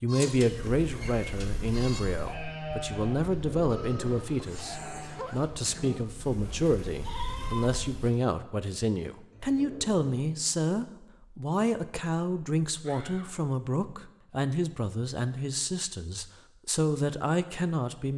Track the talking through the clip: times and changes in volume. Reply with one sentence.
You can hear the talking from 0.0 to 18.1 s, at a steady volume.